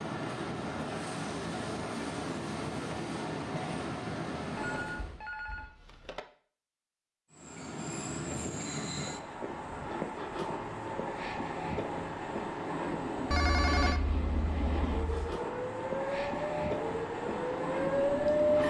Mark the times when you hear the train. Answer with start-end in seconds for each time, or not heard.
0.0-5.2, 7.3-18.6.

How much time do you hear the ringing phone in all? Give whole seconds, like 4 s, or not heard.
4 s.